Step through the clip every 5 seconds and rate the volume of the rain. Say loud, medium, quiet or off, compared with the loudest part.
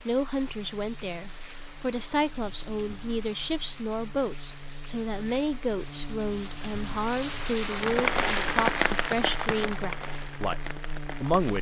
quiet, loud, medium.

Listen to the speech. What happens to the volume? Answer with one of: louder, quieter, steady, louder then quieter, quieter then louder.
steady.